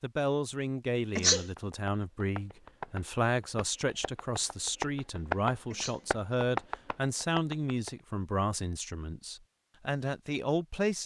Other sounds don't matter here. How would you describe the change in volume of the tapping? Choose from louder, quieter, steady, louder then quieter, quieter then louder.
quieter then louder.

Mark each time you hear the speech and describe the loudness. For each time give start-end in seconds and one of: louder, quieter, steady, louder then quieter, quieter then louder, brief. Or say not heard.
0.0-11.0 steady.